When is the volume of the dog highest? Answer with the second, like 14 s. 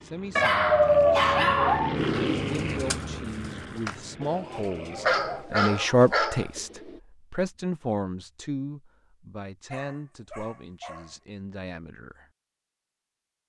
1 s.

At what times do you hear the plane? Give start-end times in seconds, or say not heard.
0.0-5.5.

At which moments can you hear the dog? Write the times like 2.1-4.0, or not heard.
0.3-1.9, 5.0-6.5, 9.7-11.2.